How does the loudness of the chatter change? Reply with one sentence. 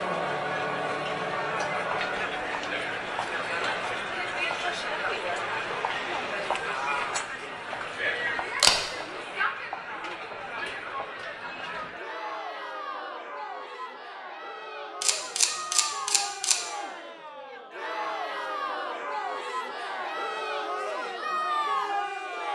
The loudness of the chatter goes down, then up.